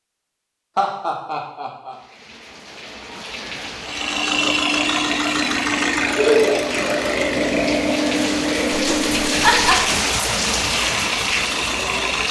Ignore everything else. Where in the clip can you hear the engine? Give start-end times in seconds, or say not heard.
3.8-12.2.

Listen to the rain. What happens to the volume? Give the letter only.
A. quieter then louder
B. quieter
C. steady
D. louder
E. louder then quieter
D.